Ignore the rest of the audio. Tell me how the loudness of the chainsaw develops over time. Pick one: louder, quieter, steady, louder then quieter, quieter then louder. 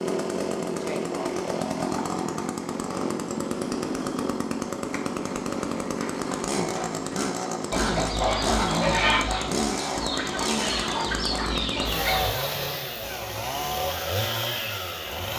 steady.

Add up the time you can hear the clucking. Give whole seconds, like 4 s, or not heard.
7 s.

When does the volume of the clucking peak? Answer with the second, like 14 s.
9 s.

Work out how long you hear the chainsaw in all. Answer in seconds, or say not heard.
15 s.